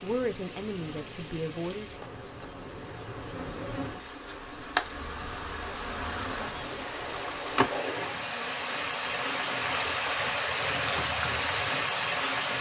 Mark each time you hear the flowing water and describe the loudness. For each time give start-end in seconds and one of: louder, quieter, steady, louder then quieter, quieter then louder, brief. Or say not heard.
0.0-12.5 louder.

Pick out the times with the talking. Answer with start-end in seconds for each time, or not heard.
0.0-1.9.